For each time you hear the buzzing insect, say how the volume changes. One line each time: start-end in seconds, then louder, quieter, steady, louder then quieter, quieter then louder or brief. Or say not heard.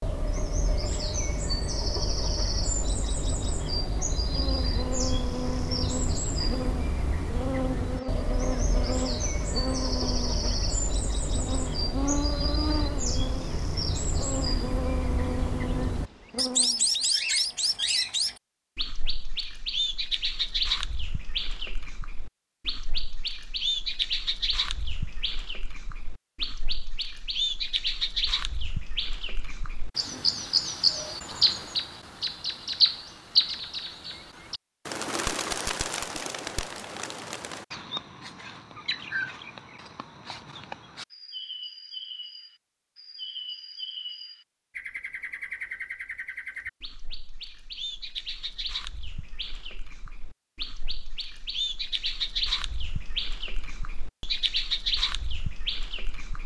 4.3-16.9 steady.